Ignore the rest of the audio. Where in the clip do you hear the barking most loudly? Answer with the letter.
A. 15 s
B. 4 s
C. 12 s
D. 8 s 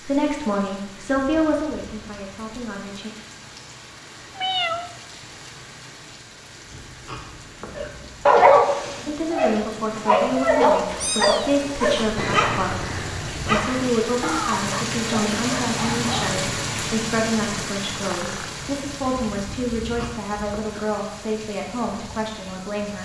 D.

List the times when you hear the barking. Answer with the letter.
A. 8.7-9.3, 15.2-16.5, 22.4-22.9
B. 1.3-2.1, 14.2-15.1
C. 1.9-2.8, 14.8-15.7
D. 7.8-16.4
D.